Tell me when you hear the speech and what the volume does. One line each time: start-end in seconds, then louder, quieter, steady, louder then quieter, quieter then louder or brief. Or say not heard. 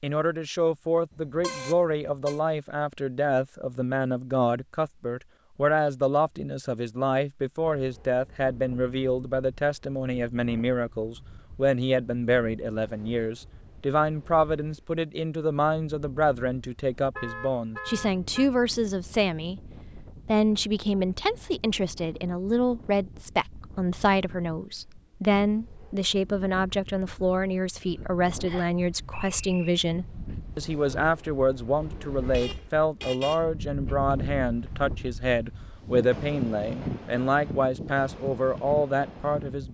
0.0-39.6 steady.